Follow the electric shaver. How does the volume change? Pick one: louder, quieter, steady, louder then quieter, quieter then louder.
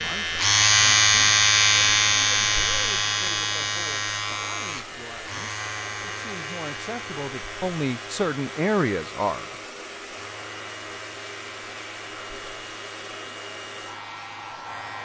quieter.